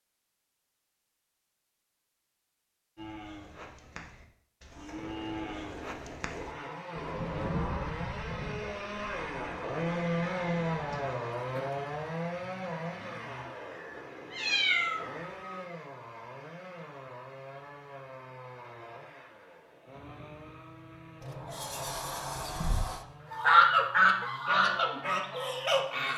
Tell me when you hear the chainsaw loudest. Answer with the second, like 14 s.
10 s.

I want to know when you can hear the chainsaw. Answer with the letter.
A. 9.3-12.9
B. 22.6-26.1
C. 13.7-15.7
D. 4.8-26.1
D.